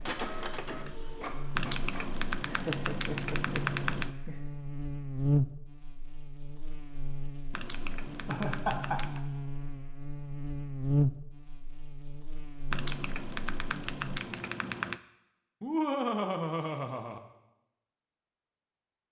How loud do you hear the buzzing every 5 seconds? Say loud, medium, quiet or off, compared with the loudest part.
medium, loud, loud, off.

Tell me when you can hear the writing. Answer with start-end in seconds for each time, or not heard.
not heard.